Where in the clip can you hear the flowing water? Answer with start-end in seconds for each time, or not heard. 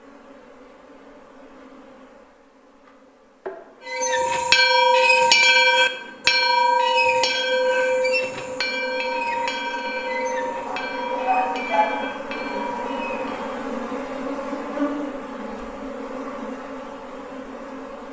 not heard.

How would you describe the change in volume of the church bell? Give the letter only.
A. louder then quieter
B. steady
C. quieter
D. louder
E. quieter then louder
C.